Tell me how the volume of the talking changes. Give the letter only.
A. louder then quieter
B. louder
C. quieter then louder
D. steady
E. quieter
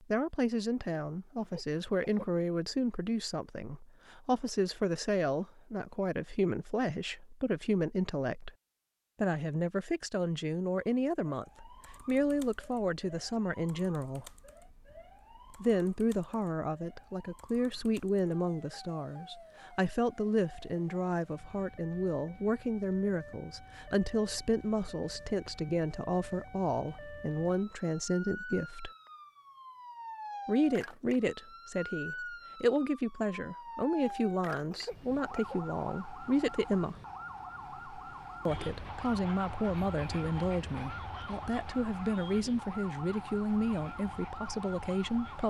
D.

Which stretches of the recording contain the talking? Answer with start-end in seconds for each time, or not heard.
0.0-8.5, 9.2-14.2, 15.5-28.9, 30.4-37.0, 38.5-45.4.